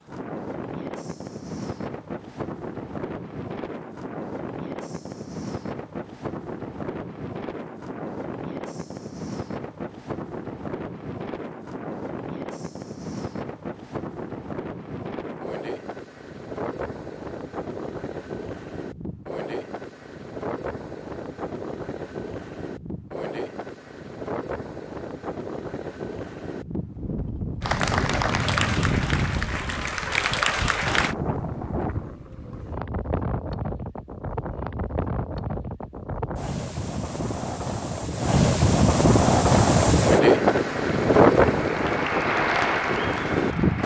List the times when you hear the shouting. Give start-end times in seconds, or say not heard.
not heard.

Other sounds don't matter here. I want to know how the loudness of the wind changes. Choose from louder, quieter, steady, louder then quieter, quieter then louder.
louder.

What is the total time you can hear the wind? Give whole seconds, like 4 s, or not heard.
44 s.